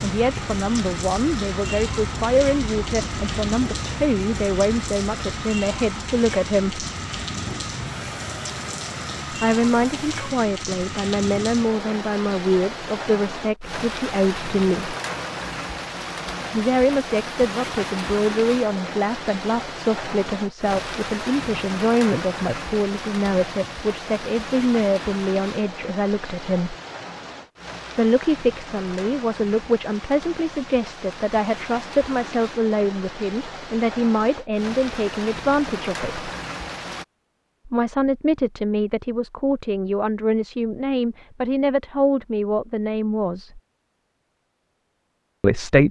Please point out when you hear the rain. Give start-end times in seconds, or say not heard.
0.0-37.0.